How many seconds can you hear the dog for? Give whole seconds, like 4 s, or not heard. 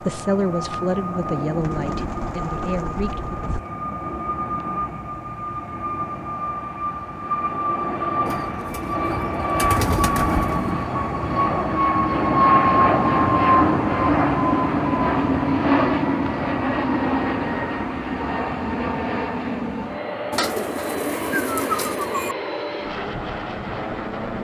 not heard.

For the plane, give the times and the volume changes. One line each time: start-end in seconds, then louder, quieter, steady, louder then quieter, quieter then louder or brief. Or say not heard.
0.0-24.4 louder then quieter.